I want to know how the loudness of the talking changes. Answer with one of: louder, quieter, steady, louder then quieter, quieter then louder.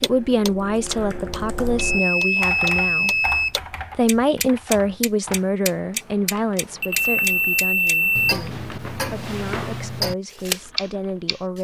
quieter.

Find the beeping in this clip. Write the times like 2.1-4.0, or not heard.
1.8-3.5, 6.8-8.3.